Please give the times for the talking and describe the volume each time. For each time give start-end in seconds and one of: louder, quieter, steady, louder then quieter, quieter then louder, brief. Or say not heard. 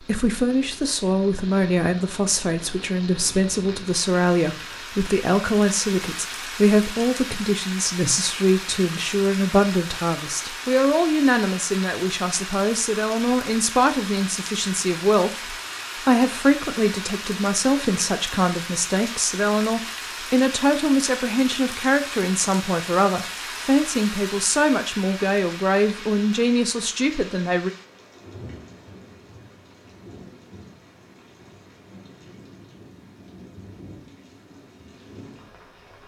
0.0-27.7 steady.